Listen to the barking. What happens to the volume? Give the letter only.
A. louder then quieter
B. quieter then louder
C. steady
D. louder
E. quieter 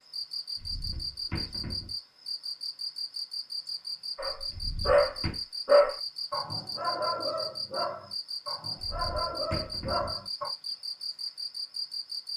B.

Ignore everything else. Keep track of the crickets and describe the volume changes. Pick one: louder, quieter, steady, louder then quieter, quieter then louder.
steady.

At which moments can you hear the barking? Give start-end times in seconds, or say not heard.
4.2-10.5.